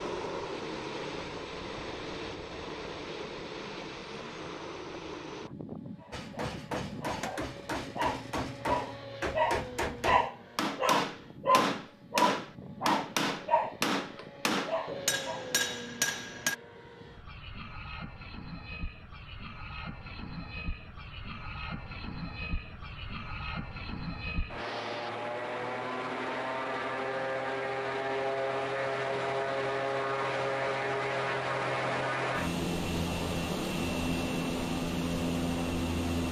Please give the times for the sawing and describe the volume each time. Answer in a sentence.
You can't hear the sawing here.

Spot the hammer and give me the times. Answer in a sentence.
You can hear the hammer from 6.1 to 16.6 s.